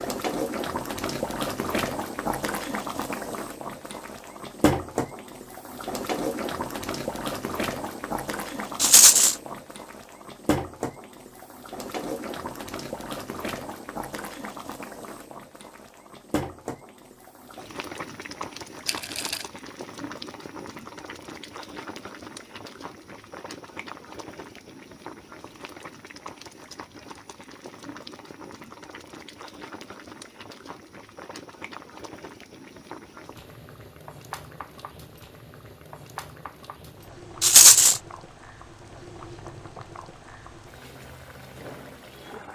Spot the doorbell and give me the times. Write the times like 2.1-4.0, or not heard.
not heard.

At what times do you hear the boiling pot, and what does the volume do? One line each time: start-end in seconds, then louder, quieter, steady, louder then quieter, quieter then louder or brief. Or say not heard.
0.0-42.5 quieter.